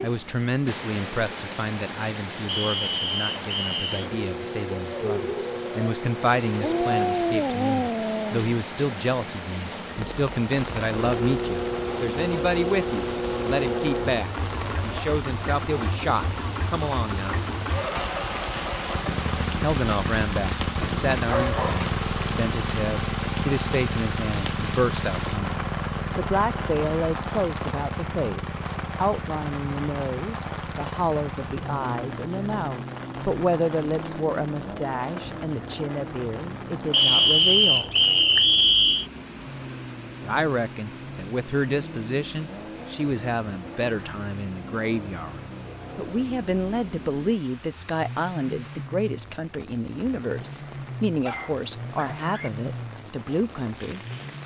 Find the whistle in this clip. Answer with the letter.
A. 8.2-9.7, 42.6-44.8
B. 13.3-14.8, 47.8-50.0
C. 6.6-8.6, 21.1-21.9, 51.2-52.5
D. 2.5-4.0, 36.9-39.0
D.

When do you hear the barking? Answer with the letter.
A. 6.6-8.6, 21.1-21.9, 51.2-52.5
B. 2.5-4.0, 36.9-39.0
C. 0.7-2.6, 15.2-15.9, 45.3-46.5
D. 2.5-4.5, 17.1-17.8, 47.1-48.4
A.